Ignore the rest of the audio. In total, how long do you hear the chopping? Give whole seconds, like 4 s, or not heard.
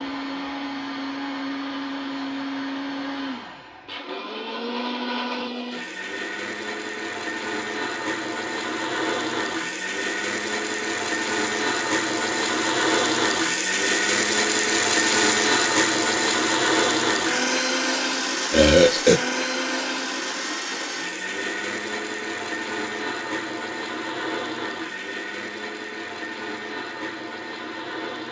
not heard.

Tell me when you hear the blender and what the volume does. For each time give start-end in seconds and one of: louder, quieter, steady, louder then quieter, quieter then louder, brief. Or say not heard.
0.0-28.2 louder then quieter.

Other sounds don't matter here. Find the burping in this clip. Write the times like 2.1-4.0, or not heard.
18.5-19.2.